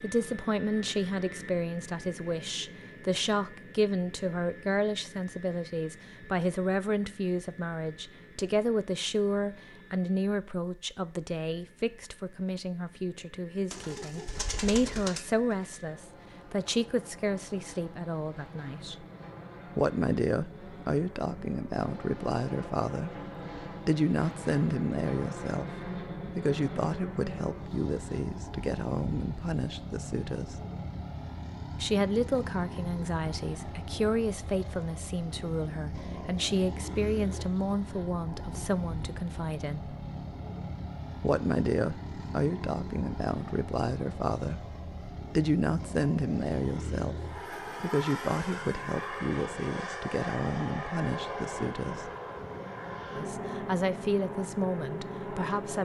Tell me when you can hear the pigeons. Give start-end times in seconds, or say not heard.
13.7-15.7.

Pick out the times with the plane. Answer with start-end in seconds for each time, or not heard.
0.0-55.8.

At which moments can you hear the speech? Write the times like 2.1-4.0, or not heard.
0.0-19.1, 19.8-30.6, 31.8-40.0, 41.2-52.1, 53.1-55.8.